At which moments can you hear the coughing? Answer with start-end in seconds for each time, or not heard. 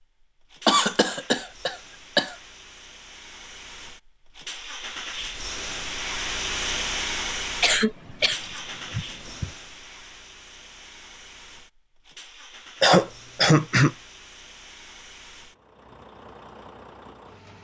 0.7-2.4, 7.6-9.5, 12.8-13.9.